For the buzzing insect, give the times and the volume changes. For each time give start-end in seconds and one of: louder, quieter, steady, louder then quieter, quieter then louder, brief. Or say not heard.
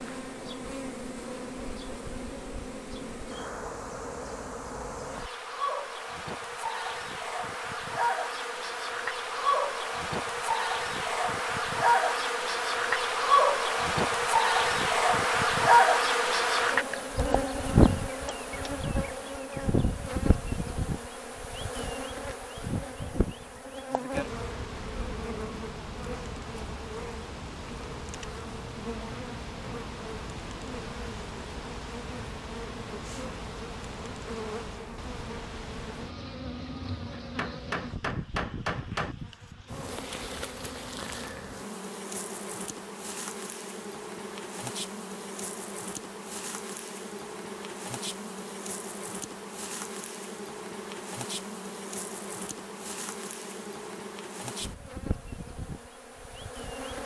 0.0-57.0 louder then quieter.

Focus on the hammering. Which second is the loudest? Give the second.
39 s.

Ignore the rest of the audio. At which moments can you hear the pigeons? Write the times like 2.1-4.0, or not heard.
not heard.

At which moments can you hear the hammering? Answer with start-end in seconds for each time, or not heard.
37.1-39.1.